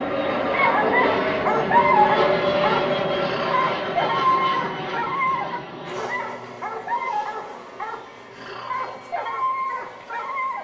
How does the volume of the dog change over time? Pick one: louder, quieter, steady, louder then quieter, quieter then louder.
quieter.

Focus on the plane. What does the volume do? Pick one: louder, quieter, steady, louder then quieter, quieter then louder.
quieter.